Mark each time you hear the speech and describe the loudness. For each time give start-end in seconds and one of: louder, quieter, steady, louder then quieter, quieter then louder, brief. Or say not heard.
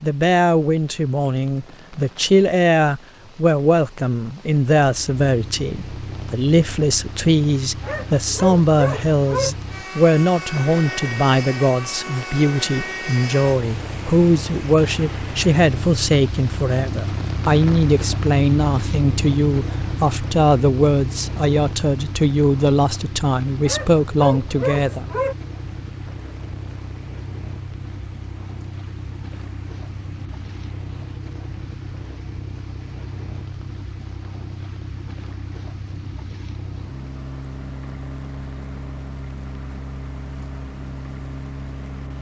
0.0-25.1 steady.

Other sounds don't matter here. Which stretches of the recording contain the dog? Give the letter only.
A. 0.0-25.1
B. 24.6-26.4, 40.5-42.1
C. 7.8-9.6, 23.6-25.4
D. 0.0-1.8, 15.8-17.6
C.